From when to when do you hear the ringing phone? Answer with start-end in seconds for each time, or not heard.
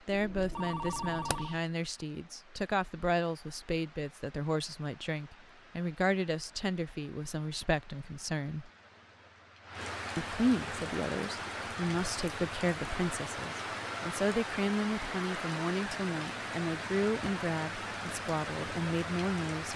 0.1-1.6.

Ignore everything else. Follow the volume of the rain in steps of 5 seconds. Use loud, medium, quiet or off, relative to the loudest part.
quiet, quiet, loud, loud.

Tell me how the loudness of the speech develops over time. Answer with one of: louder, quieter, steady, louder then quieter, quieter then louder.
steady.